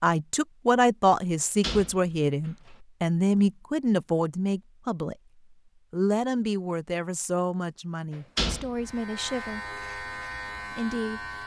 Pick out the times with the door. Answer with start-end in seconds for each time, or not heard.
1.4-2.7, 8.2-9.4.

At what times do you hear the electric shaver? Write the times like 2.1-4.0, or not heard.
8.8-11.4.